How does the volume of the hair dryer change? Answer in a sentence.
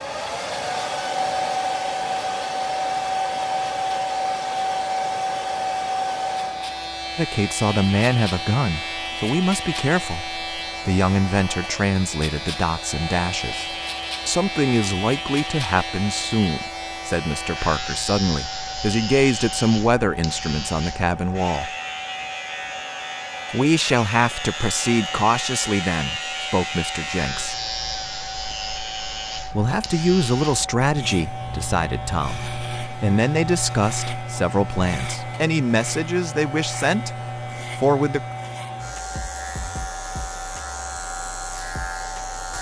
The loudness of the hair dryer goes down.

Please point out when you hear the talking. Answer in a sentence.
The talking can be heard from 7.2 to 21.7 s, from 23.5 to 27.6 s and from 29.5 to 38.2 s.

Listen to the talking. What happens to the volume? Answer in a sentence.
The loudness of the talking stays about the same.